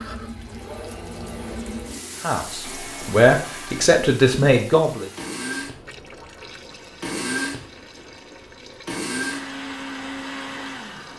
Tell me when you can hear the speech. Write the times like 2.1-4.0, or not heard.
2.2-5.0.